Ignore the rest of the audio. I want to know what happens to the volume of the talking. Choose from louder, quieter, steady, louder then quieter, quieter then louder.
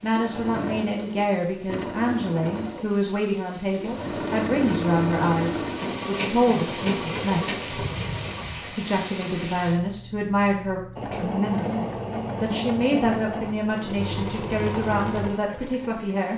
steady.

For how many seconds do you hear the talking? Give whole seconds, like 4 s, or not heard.
15 s.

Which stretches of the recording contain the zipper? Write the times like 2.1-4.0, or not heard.
not heard.